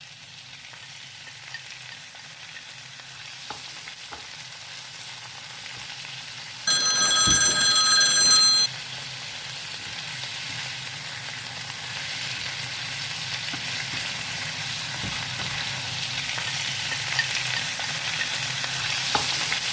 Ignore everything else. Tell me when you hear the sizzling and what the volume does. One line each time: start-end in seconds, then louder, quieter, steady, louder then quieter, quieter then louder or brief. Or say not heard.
0.0-19.6 louder.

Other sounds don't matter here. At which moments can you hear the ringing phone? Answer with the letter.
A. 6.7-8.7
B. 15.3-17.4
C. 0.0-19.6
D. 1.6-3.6
A.